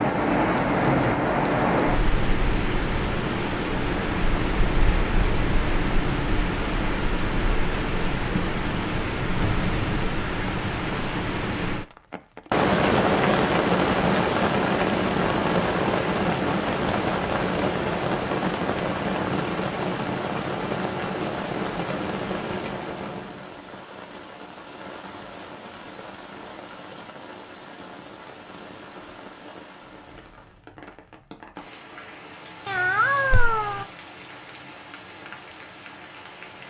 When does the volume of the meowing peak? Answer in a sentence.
The volume of the meowing peaks at 33 seconds.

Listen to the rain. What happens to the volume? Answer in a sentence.
The loudness of the rain goes down.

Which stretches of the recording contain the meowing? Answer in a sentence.
The meowing can be heard from 9.3 to 10.1 s and from 32.6 to 33.9 s.